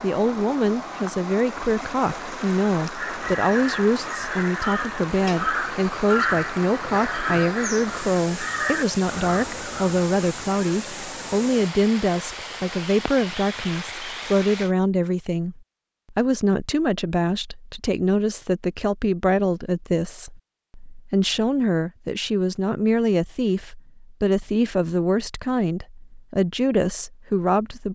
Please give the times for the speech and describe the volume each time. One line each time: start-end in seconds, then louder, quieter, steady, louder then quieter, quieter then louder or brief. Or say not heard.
0.0-27.9 steady.